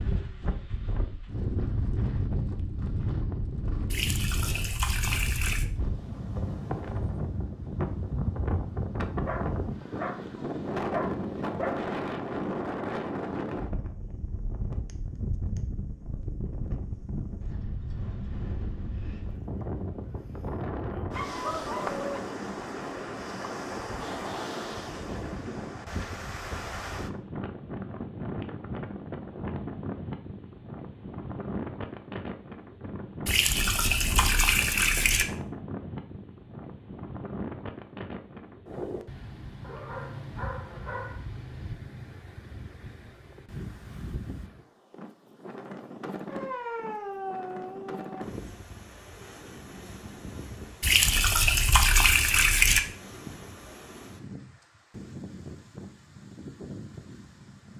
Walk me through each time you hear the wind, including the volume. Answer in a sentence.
The wind can be heard from 0.0 to 57.7 s, getting quieter.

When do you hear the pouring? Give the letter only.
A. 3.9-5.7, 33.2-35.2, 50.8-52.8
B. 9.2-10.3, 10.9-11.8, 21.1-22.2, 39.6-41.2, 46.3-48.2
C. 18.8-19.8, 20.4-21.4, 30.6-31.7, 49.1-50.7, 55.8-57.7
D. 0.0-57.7
A.